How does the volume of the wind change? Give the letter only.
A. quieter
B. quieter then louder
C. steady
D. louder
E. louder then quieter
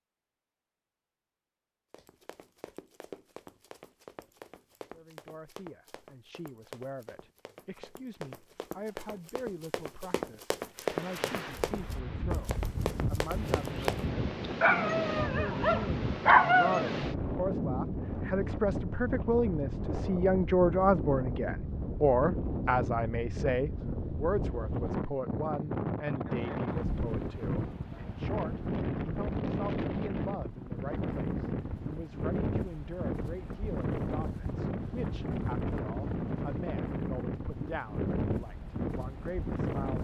C.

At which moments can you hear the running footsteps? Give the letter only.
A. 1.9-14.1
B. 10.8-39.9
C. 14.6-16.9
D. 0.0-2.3
A.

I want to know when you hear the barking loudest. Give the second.
16 s.